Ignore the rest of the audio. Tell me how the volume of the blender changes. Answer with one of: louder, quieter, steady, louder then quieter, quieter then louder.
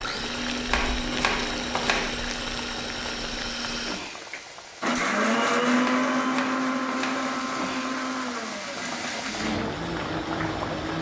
louder then quieter.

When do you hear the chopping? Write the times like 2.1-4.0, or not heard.
0.7-2.1, 5.8-7.2.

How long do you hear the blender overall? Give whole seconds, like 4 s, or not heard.
11 s.